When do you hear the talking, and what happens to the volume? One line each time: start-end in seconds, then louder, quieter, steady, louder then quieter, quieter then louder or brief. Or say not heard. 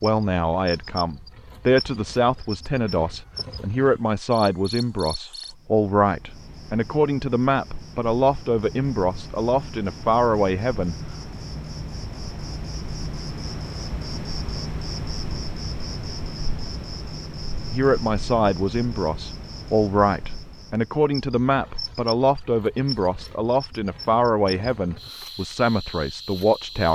0.0-10.9 steady
17.7-26.9 steady.